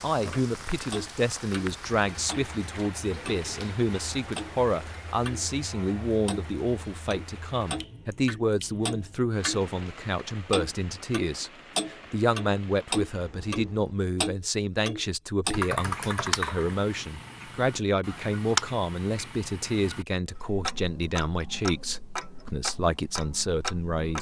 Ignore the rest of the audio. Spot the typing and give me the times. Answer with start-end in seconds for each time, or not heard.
15.5-16.8.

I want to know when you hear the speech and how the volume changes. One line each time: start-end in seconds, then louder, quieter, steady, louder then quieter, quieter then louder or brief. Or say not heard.
0.0-24.1 steady.